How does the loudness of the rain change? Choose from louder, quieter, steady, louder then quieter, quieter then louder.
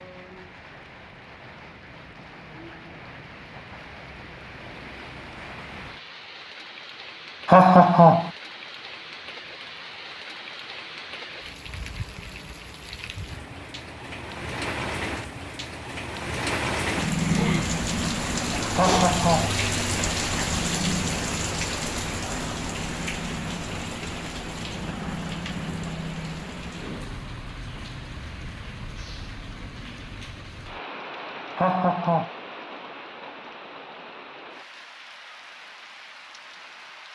louder then quieter.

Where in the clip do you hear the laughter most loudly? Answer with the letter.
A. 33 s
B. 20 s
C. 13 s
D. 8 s
D.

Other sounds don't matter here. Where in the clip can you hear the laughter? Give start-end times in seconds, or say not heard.
7.5-8.3, 18.8-19.6, 31.6-32.3.